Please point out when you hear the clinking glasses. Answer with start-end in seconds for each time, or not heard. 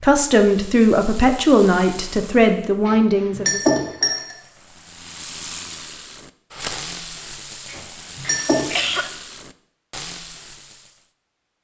2.9-4.3, 7.7-8.7.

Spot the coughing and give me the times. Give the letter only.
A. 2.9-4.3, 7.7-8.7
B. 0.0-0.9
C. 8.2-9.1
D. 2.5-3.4
C.